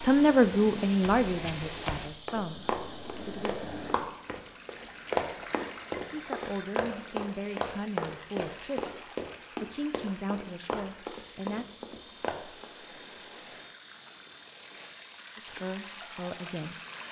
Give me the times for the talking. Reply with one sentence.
You can hear the talking from 0.0 to 3.6 s, from 6.1 to 11.7 s and from 15.3 to 16.8 s.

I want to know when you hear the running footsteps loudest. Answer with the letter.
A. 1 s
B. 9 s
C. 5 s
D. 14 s
C.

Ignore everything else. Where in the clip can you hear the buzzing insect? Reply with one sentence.
You can hear the buzzing insect from 0.0 to 6.7 s and from 11.1 to 17.0 s.